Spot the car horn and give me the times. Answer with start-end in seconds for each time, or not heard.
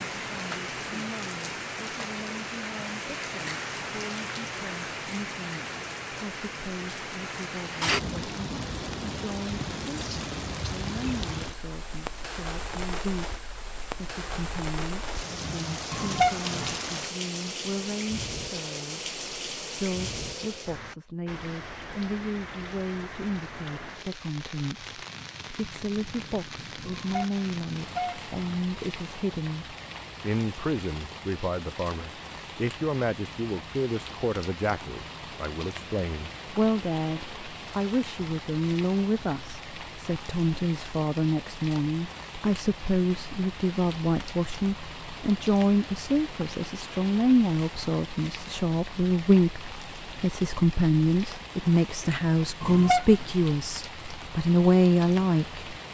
15.9-16.8, 26.9-28.6, 52.6-53.3.